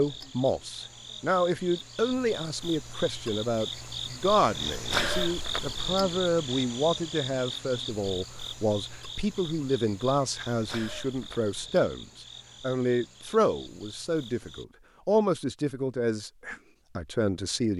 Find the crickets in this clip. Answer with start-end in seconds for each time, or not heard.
0.0-14.7.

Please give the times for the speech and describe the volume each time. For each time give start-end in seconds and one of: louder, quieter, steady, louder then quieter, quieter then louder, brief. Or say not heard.
0.0-17.7 steady.